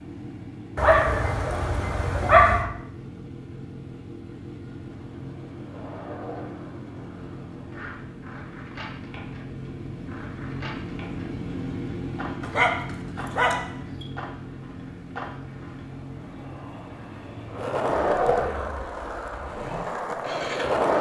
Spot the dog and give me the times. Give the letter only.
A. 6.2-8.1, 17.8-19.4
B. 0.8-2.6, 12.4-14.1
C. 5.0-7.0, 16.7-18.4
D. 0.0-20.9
B.